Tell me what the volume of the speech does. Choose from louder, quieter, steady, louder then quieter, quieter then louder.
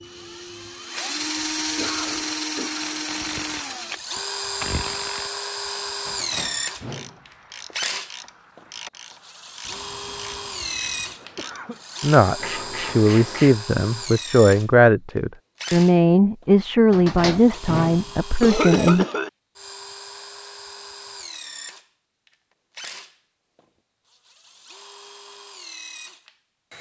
steady.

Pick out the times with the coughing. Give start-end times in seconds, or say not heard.
1.4-3.0, 9.7-11.8, 18.4-19.3.